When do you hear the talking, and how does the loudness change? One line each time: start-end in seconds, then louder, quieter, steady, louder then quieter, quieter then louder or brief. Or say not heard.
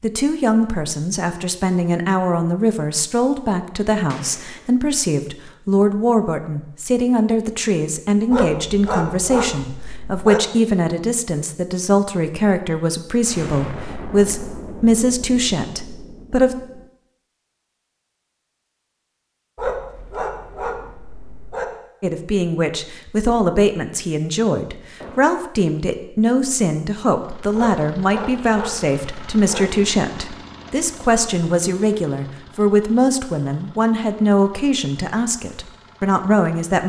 0.0-16.6 steady
22.0-36.8 steady.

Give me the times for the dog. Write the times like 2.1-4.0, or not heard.
8.3-10.4, 19.6-21.6, 27.5-29.6.